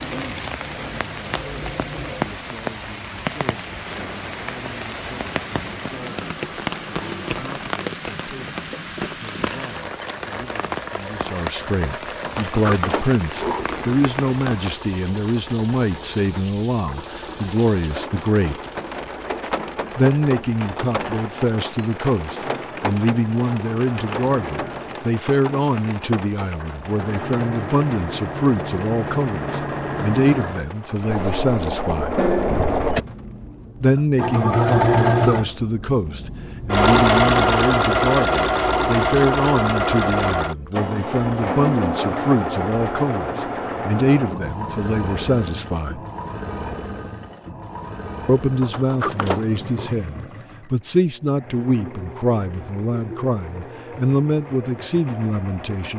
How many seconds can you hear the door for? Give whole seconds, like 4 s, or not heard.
4 s.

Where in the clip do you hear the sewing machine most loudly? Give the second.
37 s.